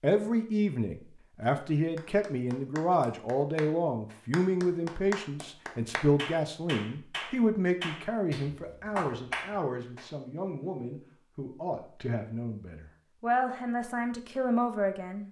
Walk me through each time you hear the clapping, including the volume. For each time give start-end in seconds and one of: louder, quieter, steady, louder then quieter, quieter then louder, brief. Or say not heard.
1.9-10.1 louder.